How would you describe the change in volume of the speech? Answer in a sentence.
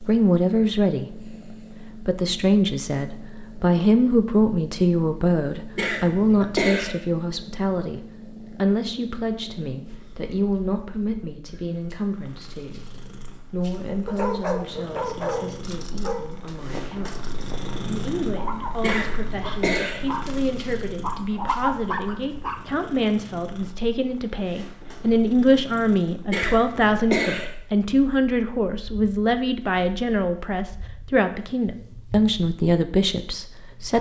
The loudness of the speech goes down, then up.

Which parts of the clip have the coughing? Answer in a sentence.
You can hear the coughing from 5.8 to 6.9 s, from 18.8 to 20.0 s and from 26.3 to 27.4 s.